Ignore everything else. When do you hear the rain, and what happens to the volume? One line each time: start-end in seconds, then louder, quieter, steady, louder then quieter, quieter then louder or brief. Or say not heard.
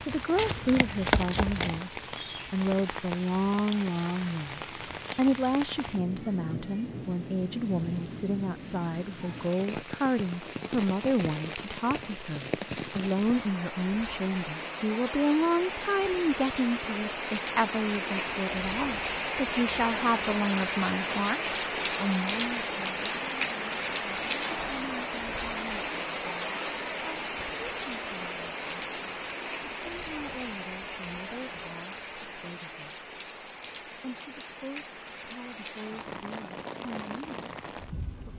0.0-38.3 louder then quieter.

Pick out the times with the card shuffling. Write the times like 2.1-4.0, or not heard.
0.3-1.8.